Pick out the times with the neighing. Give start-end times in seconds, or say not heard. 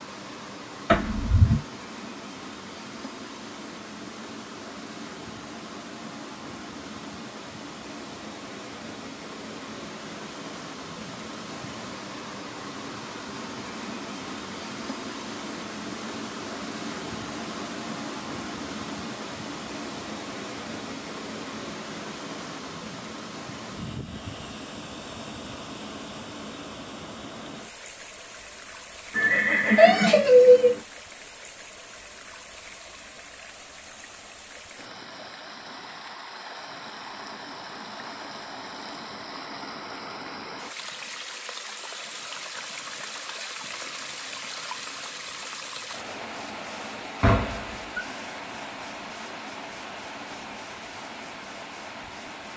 0.8-1.6, 29.1-30.8, 47.2-48.0.